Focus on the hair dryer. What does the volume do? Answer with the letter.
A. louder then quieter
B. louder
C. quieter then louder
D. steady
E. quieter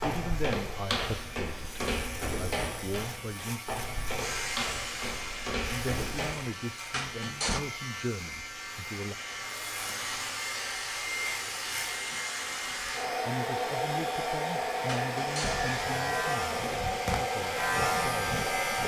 B.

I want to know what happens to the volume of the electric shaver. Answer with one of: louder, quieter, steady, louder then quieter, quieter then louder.
louder.